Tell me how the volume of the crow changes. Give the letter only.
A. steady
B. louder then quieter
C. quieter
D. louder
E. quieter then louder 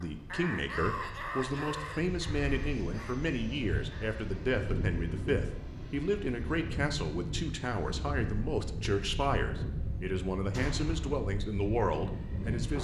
C.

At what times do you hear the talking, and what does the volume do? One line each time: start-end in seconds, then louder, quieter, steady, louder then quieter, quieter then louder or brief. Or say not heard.
0.0-12.8 steady.